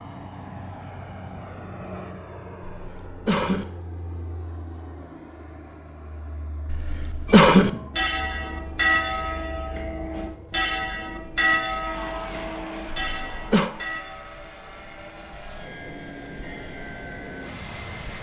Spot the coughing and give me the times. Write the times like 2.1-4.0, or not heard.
2.6-3.6, 6.7-7.7, 13.0-13.7.